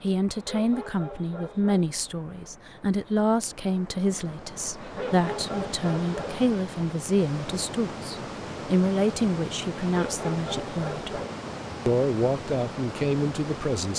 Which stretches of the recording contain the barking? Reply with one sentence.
The barking can be heard from 0.2 to 1.9 s, from 4.8 to 6.5 s and from 9.8 to 11.4 s.